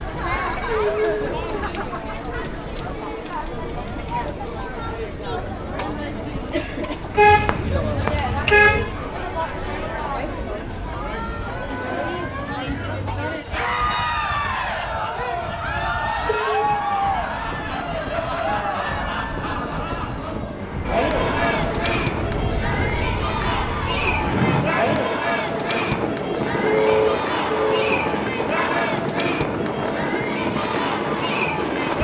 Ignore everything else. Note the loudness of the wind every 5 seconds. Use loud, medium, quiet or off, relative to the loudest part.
quiet, quiet, quiet, medium, loud, loud, loud.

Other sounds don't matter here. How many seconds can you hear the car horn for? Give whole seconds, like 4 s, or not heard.
4 s.